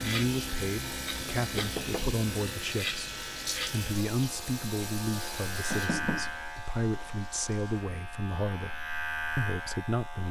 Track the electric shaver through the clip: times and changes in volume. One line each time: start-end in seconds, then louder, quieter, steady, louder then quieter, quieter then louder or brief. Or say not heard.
0.0-10.2 steady.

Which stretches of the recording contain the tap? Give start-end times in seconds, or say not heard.
0.0-8.0.